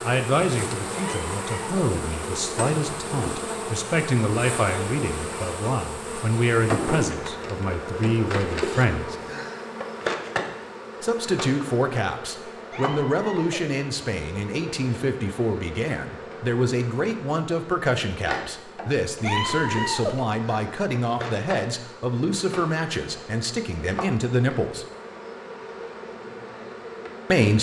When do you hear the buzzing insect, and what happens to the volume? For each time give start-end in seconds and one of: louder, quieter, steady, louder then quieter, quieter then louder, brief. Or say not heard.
0.0-27.5 quieter.